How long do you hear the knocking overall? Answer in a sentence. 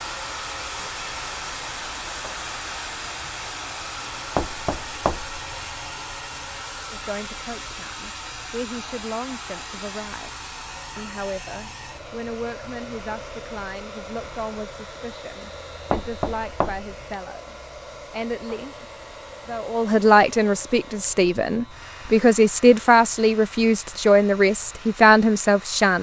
You can hear the knocking for 2 seconds altogether.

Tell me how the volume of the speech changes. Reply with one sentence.
The volume of the speech goes up.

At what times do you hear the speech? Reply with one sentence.
You can hear the speech from 6.9 to 18.9 s and from 19.4 to 25.9 s.